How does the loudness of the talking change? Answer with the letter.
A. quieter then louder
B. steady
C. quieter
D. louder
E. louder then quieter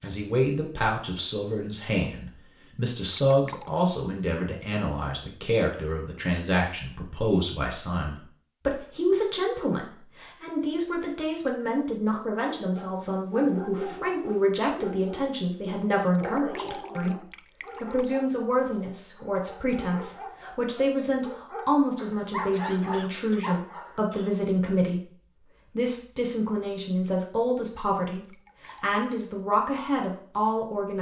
B.